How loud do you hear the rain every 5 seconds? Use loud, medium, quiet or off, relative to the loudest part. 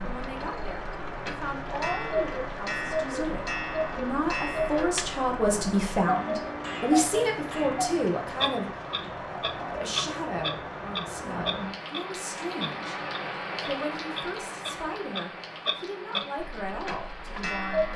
loud, loud, loud, medium.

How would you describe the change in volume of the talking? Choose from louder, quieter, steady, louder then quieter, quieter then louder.
louder then quieter.